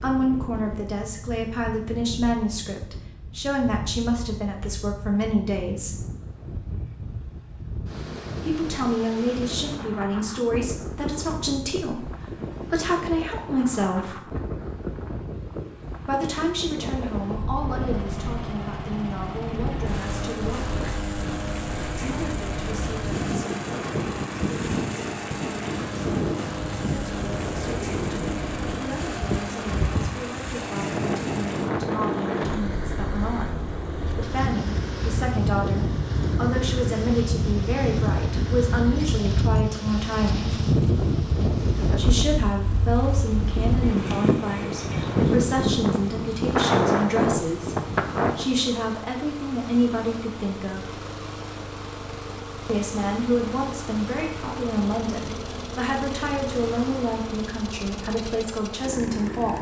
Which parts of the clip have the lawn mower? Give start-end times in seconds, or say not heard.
17.4-59.5.